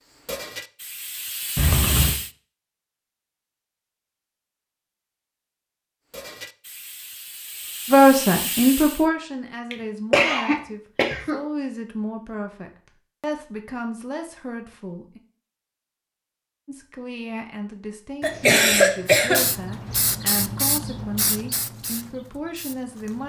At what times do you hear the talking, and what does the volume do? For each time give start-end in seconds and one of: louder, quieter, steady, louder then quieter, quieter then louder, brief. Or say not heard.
7.8-15.2 quieter
16.6-23.2 steady.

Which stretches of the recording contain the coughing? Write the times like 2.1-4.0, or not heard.
1.6-2.1, 9.7-11.4, 18.2-19.4.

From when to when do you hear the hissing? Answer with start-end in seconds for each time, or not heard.
0.1-2.3, 6.1-9.1, 19.1-23.2.